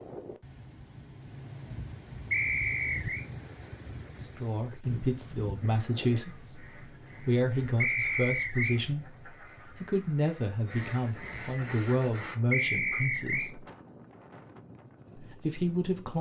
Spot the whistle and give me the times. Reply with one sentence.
The whistle can be heard from 2.3 to 3.2 s, from 7.8 to 8.8 s and from 12.5 to 13.5 s.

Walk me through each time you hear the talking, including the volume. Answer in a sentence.
You can hear the talking from 4.2 to 13.7 s, at a steady volume; and briefly from 15.2 to 16.1 s.